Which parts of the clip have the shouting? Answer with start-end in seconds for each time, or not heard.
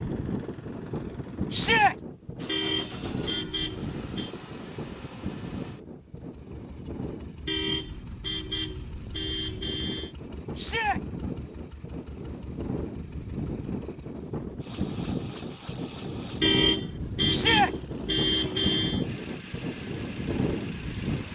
1.5-1.9, 10.6-11.0, 17.2-17.7.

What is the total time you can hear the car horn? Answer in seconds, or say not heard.
7 s.